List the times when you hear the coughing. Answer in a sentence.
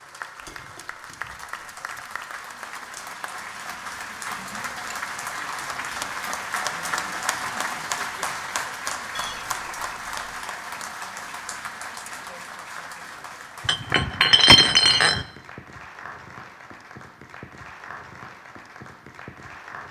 You can't hear the coughing here.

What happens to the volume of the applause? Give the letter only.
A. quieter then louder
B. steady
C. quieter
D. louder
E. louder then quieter
E.